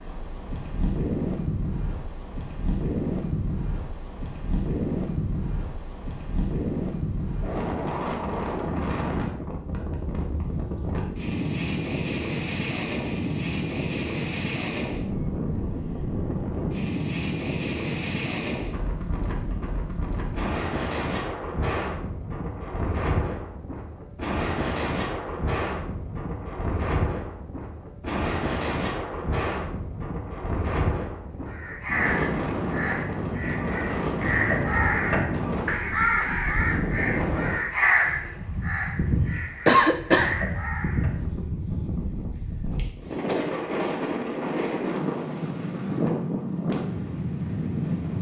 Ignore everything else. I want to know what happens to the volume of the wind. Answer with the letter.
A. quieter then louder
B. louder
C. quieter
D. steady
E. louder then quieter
D.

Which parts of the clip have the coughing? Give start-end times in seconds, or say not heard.
39.6-40.4.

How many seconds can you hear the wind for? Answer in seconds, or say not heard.
48 s.